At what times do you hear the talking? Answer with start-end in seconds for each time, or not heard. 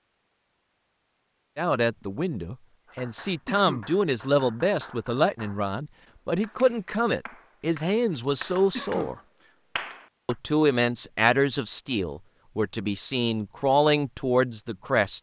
1.6-9.2, 10.2-15.1.